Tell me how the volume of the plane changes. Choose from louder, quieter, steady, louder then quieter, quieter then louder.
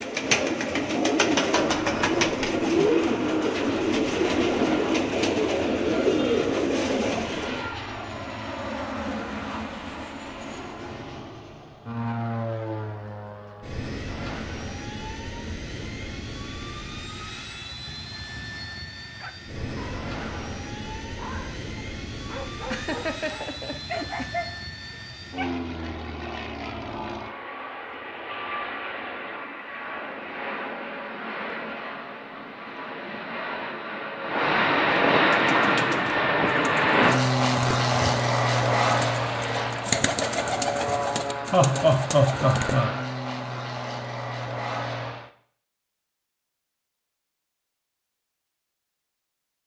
louder.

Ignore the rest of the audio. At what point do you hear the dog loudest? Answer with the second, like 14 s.
24 s.